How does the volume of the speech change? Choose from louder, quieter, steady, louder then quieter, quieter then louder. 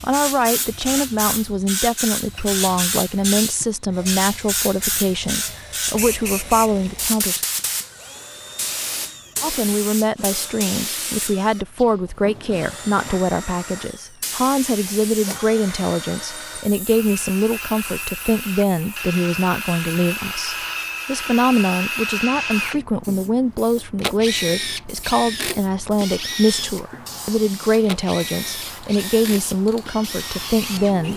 steady.